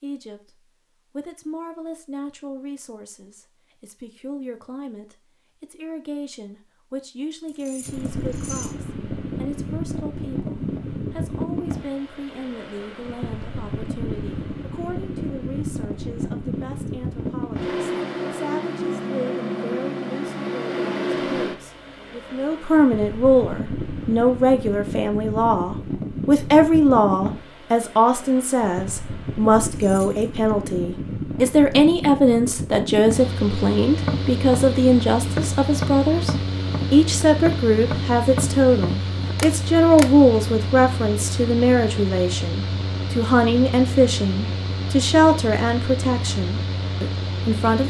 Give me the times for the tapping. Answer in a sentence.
The tapping can be heard from 34.0 to 40.1 s.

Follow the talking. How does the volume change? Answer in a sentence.
The volume of the talking goes up.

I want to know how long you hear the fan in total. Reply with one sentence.
You can hear the fan for 40 seconds altogether.